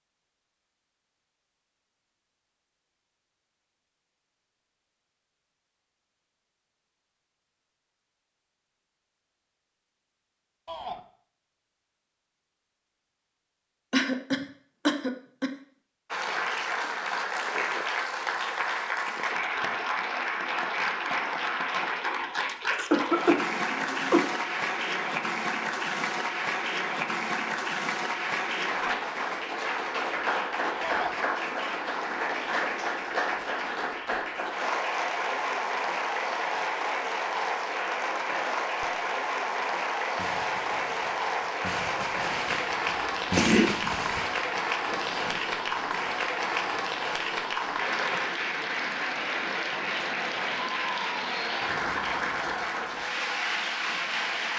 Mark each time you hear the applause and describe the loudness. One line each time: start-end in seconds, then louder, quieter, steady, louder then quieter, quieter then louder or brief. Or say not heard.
16.1-54.5 steady.